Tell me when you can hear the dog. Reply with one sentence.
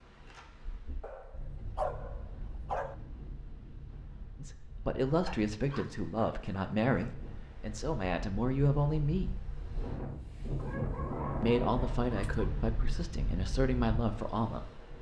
The dog can be heard from 1.0 to 3.0 s, from 5.2 to 7.2 s and from 10.6 to 12.5 s.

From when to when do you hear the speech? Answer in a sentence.
The speech can be heard from 4.3 to 9.3 s and from 11.4 to 14.8 s.